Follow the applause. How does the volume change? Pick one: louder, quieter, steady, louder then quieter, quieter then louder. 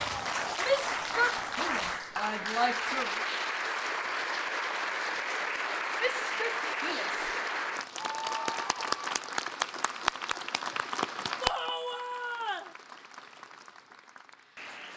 quieter.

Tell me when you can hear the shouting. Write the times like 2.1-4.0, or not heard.
0.6-3.3, 6.0-7.3, 11.4-12.8.